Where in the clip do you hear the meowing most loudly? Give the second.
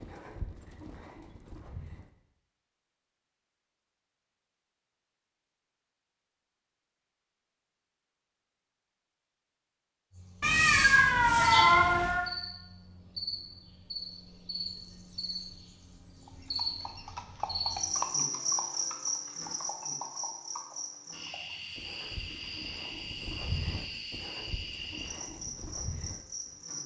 12 s.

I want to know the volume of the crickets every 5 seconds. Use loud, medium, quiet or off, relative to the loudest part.
off, off, medium, loud, medium, medium.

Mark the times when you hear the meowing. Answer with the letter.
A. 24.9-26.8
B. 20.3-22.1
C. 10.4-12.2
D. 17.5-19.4
C.